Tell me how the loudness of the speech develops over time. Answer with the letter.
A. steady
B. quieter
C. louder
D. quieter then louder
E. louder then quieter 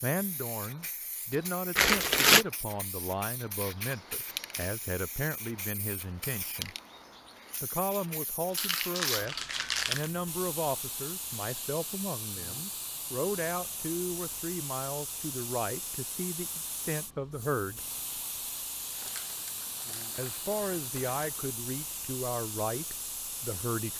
A.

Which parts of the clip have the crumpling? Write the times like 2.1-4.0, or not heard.
1.8-2.5, 8.6-10.1, 18.9-21.2.